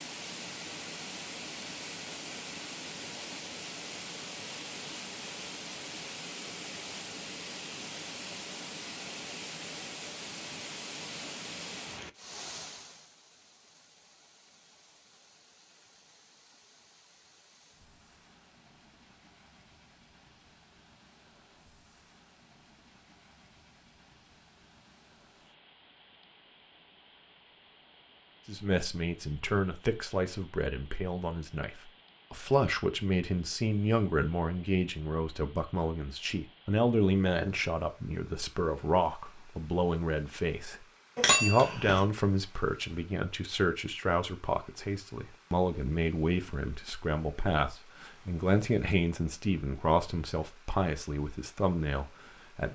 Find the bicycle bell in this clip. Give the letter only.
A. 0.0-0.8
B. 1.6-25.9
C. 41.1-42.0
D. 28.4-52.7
C.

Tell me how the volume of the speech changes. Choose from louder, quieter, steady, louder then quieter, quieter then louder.
steady.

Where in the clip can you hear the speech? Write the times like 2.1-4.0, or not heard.
28.4-52.7.